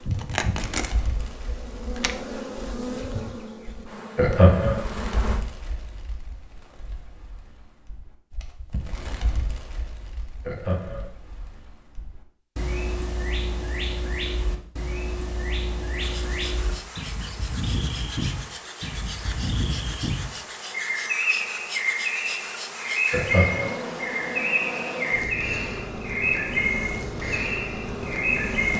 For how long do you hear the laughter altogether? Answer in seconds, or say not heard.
2 s.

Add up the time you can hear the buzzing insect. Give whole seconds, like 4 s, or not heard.
18 s.